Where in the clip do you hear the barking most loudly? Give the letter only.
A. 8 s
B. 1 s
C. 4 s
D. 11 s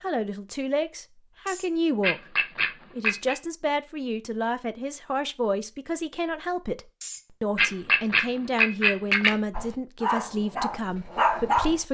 D.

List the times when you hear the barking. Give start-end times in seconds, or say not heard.
9.5-11.8.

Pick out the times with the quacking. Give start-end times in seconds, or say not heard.
1.4-3.4, 7.0-9.3.